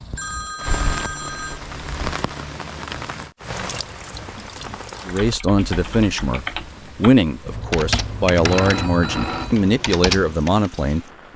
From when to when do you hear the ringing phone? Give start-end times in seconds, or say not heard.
0.1-1.6, 8.3-9.6.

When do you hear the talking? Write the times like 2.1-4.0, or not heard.
5.0-11.1.